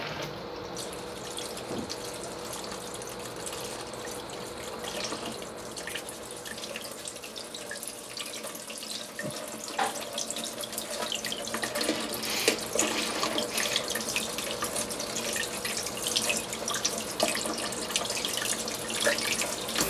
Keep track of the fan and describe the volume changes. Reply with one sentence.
The loudness of the fan goes down, then up.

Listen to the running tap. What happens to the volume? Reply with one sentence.
The loudness of the running tap goes up.